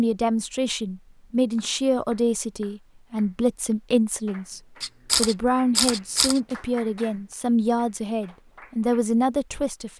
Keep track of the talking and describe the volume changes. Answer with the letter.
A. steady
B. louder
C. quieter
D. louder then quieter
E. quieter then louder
A.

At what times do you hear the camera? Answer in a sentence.
The camera can be heard from 4.8 to 6.4 s.